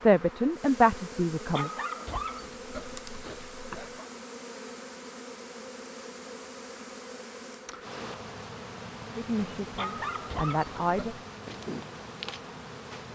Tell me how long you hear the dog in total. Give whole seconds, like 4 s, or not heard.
4 s.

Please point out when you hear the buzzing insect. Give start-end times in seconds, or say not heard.
0.0-13.1.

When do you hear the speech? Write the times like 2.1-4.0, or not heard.
0.0-1.7, 9.2-11.2.